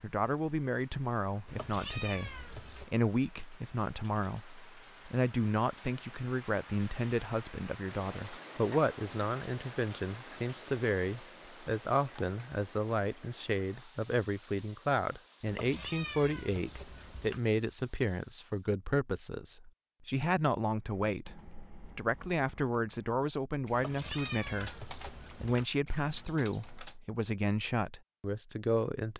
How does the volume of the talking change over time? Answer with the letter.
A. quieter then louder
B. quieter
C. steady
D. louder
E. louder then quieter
C.